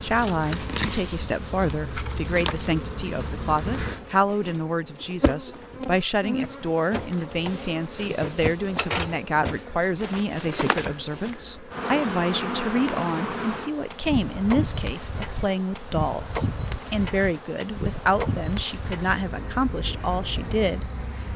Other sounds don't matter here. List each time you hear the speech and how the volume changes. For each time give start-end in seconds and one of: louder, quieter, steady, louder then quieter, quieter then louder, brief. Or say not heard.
0.0-21.3 steady.